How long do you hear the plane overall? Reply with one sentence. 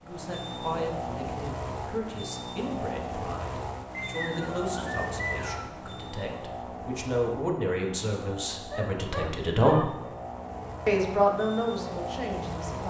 You can hear the plane for 13 seconds altogether.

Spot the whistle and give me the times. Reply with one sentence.
You can hear the whistle from 3.9 to 5.8 s.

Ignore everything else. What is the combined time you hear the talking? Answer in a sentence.
The talking can be heard for 12 seconds in total.